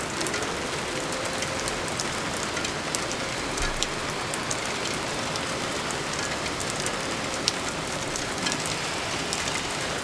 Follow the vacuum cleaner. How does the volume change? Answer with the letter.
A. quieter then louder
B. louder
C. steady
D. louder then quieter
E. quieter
C.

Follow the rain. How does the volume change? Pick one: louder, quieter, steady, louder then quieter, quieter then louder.
steady.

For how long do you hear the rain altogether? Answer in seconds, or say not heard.
10 s.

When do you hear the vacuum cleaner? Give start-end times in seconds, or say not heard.
0.1-9.9.